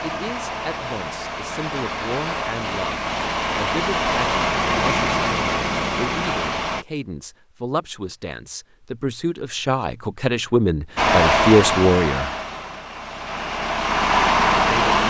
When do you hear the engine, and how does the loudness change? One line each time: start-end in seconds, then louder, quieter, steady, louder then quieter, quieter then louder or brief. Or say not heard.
0.0-6.8 louder
10.9-15.0 quieter then louder.